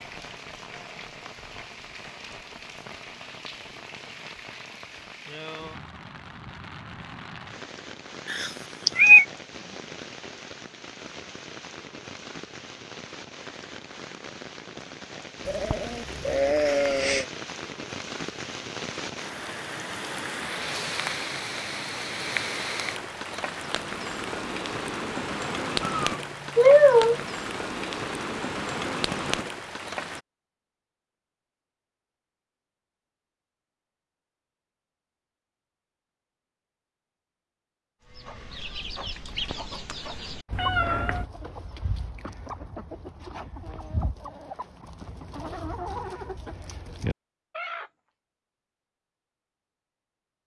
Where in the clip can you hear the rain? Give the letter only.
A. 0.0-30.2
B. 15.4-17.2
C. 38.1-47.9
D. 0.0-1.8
A.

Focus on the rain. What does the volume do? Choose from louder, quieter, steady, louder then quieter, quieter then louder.
louder.